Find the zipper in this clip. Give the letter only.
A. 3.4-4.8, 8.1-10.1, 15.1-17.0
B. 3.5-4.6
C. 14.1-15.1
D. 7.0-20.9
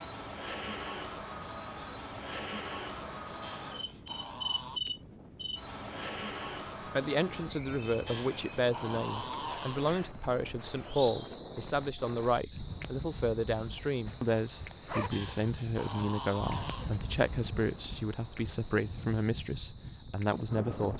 C.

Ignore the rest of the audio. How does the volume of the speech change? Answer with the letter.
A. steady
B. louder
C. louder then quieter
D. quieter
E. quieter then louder
A.